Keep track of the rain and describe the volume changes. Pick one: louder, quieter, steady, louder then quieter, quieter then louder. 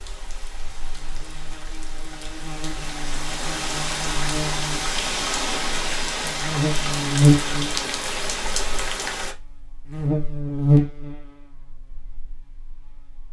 louder.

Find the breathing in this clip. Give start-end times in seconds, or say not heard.
not heard.